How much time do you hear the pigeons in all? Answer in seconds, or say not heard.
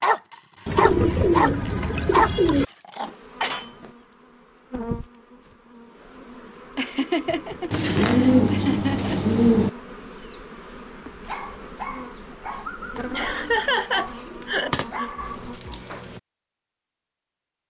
6 s.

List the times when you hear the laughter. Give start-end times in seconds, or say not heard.
0.8-1.8, 6.8-9.3, 13.1-15.1.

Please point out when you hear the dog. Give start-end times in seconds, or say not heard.
0.0-3.6, 11.2-16.2.